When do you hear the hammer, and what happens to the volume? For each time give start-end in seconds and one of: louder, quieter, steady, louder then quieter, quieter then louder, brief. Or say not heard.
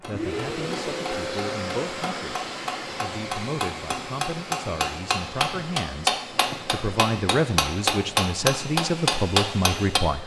0.0-10.0 louder.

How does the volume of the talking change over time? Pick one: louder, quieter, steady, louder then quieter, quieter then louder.
louder.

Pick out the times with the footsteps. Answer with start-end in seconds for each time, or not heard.
not heard.